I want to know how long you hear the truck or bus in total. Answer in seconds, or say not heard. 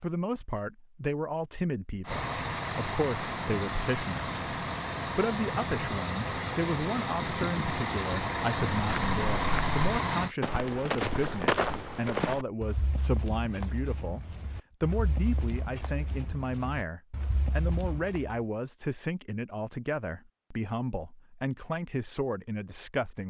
8 s.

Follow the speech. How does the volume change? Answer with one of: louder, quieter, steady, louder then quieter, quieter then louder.
steady.